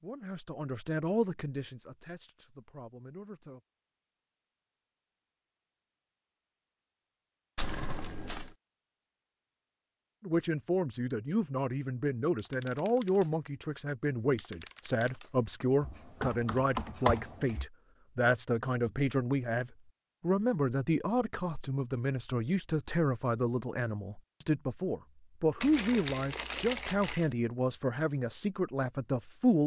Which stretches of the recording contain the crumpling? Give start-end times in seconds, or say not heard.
7.5-8.6, 25.6-27.3.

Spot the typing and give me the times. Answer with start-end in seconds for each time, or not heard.
12.3-17.6.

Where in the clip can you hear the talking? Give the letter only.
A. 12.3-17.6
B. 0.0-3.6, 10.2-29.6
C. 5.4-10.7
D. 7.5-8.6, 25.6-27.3
B.